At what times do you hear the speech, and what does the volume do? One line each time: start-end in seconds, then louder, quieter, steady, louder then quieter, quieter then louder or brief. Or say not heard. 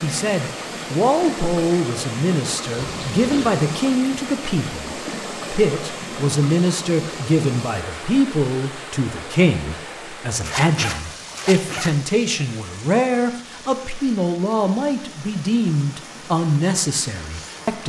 0.0-17.8 steady.